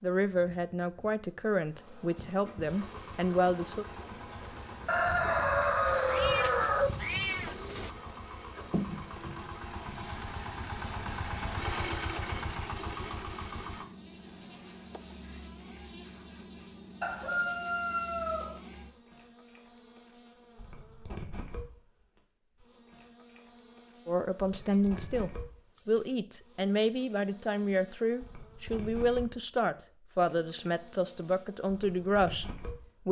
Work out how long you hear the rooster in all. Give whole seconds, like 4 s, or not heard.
4 s.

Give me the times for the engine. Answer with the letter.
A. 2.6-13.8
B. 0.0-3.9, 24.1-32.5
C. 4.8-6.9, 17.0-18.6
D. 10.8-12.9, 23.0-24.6
A.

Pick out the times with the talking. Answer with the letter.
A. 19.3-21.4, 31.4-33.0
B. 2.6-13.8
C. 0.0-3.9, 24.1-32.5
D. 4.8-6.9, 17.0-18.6
C.